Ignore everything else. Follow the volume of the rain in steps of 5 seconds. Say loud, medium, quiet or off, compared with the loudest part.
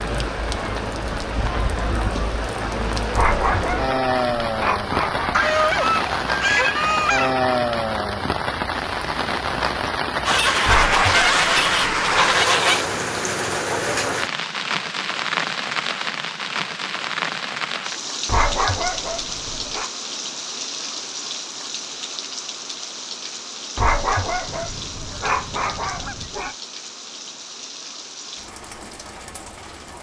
loud, loud, loud, loud, medium, quiet.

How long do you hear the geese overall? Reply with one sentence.
The geese can be heard for 7 seconds in total.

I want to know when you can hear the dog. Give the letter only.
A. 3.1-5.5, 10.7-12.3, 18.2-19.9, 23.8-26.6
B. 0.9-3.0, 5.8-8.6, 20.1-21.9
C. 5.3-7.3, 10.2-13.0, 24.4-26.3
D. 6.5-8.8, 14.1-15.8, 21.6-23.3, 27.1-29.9
A.